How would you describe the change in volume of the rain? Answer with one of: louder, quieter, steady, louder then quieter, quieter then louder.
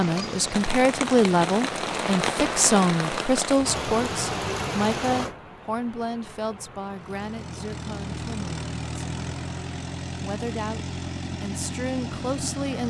quieter.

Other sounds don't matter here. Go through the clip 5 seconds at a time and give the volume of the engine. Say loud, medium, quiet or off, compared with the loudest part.
off, loud, loud.